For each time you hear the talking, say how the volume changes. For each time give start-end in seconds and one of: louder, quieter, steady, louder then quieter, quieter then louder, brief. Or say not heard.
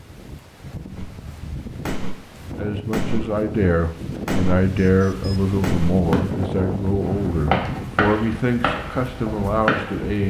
2.5-10.2 steady.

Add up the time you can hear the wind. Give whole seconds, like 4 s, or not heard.
10 s.